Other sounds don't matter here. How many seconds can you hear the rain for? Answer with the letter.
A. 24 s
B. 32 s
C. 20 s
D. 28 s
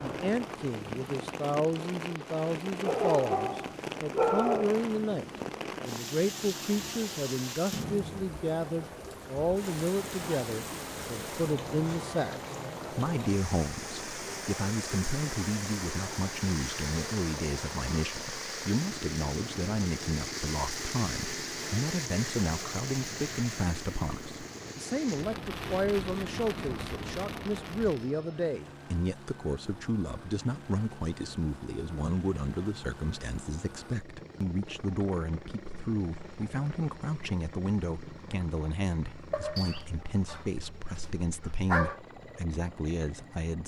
D.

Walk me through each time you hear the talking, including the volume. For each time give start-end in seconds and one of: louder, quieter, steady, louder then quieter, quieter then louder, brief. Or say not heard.
0.0-43.6 steady.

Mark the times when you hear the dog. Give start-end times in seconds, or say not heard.
2.9-4.8, 39.3-42.0.